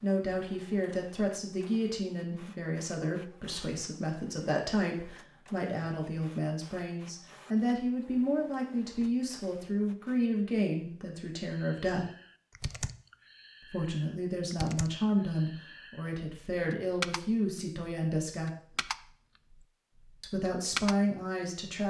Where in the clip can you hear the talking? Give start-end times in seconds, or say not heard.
0.0-12.1, 13.6-18.5, 20.2-21.8.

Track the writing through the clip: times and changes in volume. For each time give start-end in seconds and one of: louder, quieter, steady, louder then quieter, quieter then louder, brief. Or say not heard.
not heard.